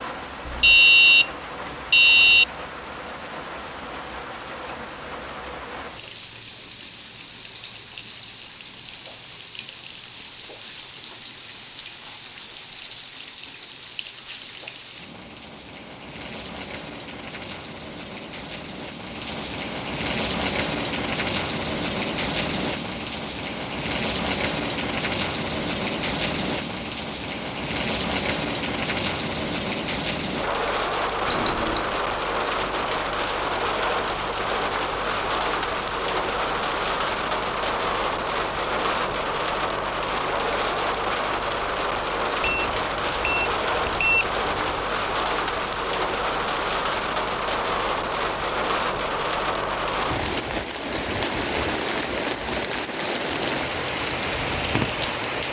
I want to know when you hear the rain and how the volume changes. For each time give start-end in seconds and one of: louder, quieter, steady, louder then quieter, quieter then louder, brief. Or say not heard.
0.0-55.4 louder.